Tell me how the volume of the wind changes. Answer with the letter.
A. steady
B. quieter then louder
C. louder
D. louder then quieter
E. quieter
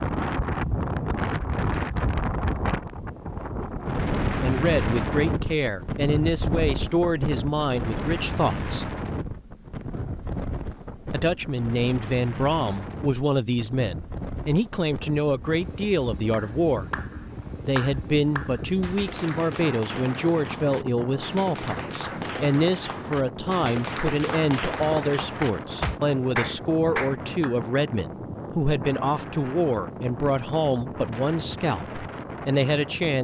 E.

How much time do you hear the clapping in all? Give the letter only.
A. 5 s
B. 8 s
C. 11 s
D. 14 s
C.